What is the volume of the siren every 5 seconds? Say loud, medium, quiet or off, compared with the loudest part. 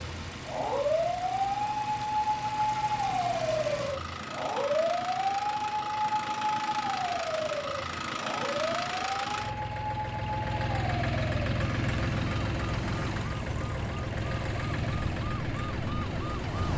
loud, loud, medium, medium.